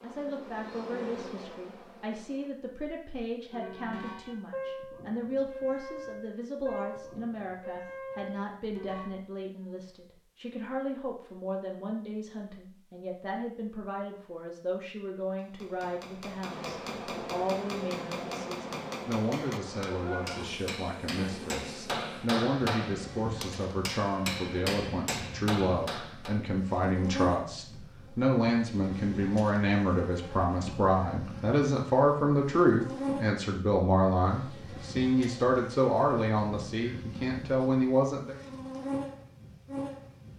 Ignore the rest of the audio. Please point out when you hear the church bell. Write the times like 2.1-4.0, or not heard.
3.5-9.1.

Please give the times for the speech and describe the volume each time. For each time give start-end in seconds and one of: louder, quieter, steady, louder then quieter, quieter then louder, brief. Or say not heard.
0.0-38.4 louder.